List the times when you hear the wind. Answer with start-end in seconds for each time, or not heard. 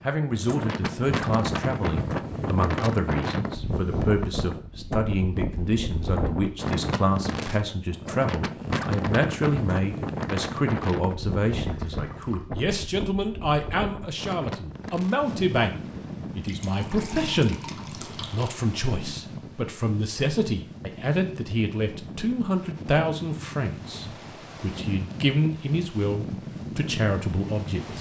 0.0-27.9.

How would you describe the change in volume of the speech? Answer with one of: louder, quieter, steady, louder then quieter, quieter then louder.
steady.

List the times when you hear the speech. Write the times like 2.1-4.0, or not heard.
0.0-15.8, 16.4-27.9.